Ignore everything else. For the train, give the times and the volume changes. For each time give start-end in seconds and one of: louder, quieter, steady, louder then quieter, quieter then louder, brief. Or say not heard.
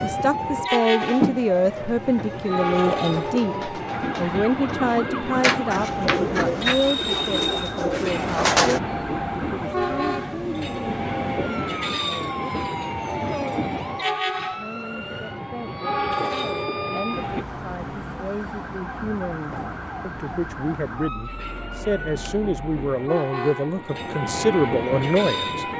0.0-17.4 steady
21.1-25.7 louder.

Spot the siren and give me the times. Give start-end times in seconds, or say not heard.
0.0-25.7.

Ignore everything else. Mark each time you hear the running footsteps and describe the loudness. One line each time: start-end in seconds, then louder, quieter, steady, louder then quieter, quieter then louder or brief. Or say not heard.
not heard.